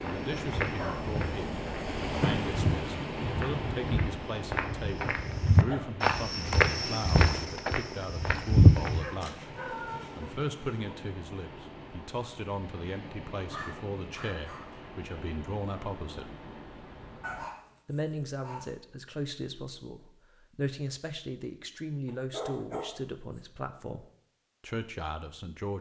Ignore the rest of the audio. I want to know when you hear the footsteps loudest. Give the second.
9 s.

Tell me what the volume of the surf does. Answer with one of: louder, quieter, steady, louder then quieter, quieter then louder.
quieter.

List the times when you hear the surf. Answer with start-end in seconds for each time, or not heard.
0.0-17.5.